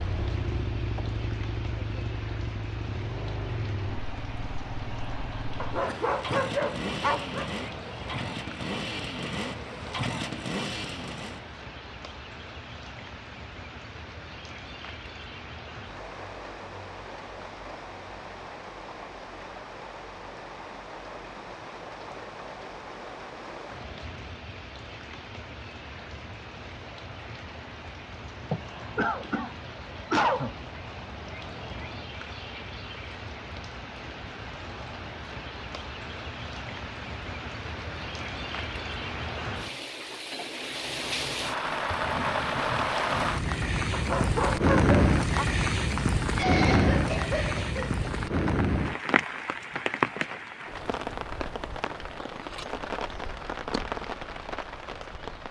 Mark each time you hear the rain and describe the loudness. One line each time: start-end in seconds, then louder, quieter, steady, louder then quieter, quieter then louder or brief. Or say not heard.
0.0-55.4 louder.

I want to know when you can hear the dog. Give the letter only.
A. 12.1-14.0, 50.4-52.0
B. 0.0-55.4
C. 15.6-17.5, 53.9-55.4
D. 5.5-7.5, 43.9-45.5
D.